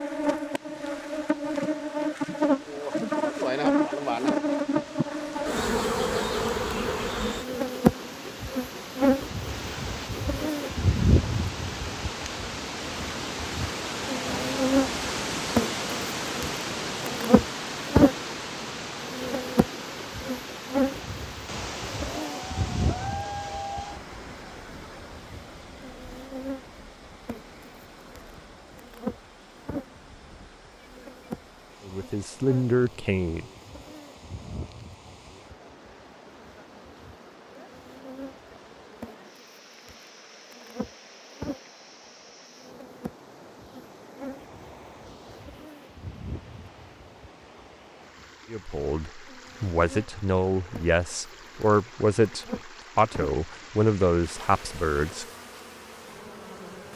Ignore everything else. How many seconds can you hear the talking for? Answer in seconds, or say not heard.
8 s.